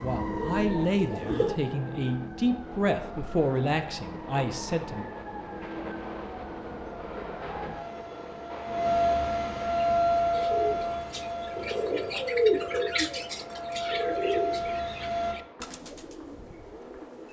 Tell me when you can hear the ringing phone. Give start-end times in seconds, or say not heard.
not heard.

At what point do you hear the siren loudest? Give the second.
10 s.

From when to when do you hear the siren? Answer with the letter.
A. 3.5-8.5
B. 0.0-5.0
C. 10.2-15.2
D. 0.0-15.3
D.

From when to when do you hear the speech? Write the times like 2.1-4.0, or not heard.
0.0-5.0.